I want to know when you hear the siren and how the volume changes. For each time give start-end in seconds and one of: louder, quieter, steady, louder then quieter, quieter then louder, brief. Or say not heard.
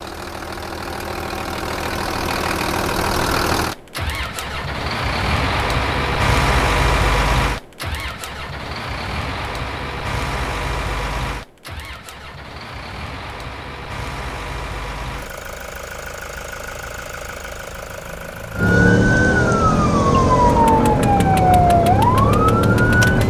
18.6-23.2 steady.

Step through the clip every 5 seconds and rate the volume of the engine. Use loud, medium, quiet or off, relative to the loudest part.
loud, loud, medium, medium, medium.